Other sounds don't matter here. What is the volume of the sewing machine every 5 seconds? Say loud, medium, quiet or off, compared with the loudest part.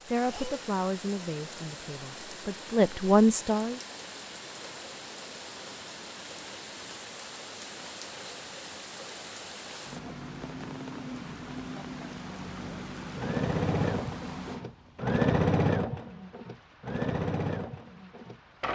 off, off, loud, loud.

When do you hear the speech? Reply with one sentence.
You can hear the speech from 0.0 to 3.8 s.